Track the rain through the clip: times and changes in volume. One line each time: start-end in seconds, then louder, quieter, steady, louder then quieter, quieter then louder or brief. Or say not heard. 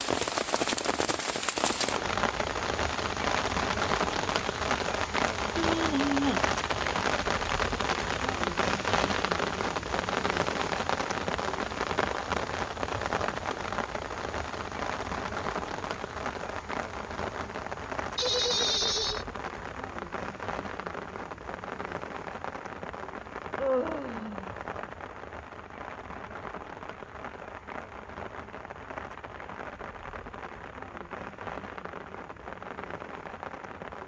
0.0-34.0 quieter.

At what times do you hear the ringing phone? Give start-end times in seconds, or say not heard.
not heard.